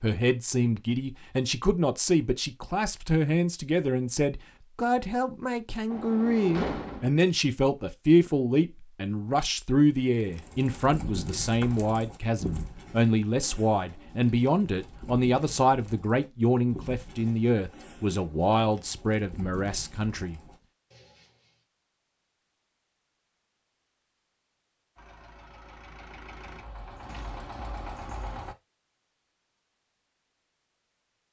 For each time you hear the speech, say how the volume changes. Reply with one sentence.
You can hear the speech from 0.0 to 20.4 s, at a steady volume.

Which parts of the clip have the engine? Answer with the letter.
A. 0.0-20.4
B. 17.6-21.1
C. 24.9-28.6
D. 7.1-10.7
C.